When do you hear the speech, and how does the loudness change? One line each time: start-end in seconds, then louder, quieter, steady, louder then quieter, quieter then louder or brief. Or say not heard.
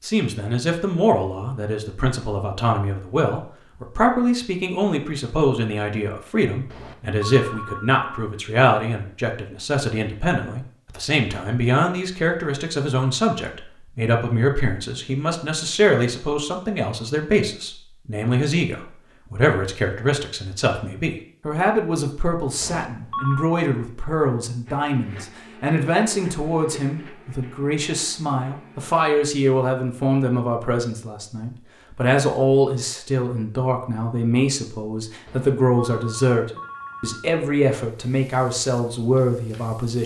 0.0-40.0 steady.